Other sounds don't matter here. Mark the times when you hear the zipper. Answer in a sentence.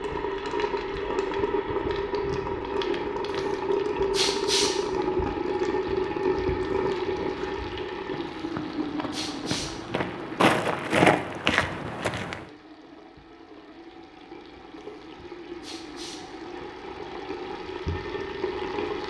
The zipper can't be heard in this clip.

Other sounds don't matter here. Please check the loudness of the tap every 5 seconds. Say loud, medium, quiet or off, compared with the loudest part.
loud, loud, quiet, medium.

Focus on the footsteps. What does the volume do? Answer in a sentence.
The loudness of the footsteps goes up.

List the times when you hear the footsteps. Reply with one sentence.
You can hear the footsteps from 6.6 to 12.4 s.